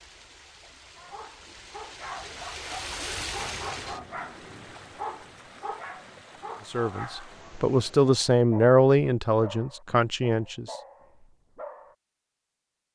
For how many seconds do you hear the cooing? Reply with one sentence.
You can't hear the cooing here.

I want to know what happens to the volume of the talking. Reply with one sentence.
The loudness of the talking goes up, then down.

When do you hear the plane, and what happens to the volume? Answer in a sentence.
The plane can't be heard in this clip.